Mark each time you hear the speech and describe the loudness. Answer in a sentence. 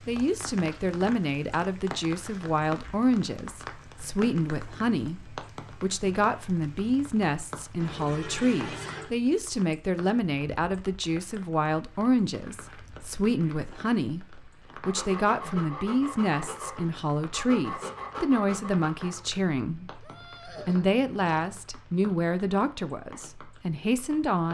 The speech can be heard from 0.1 to 24.4 s, at a steady volume.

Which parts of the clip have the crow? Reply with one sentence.
You can't hear the crow here.